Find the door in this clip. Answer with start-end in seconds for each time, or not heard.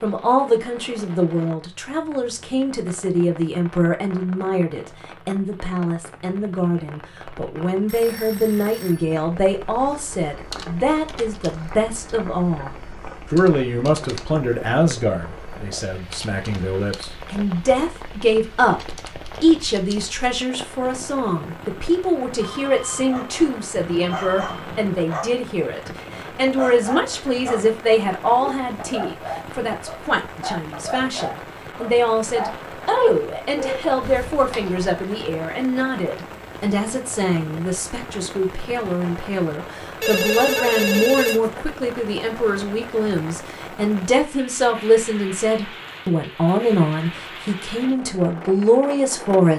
not heard.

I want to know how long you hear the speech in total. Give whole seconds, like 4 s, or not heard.
49 s.